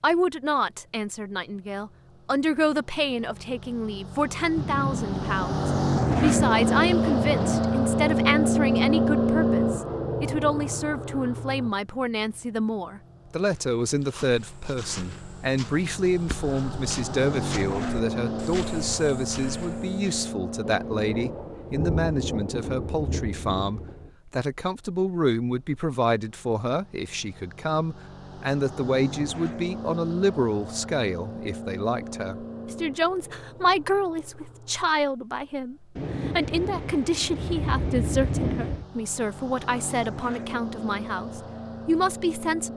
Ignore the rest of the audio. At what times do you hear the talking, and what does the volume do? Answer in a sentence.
The talking can be heard from 0.0 to 42.7 s, at a steady volume.